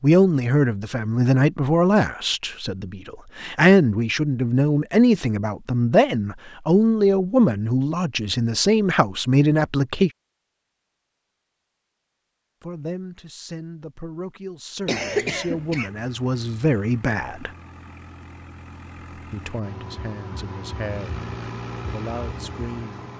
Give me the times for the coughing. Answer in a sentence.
The coughing can be heard from 14.8 to 15.9 s.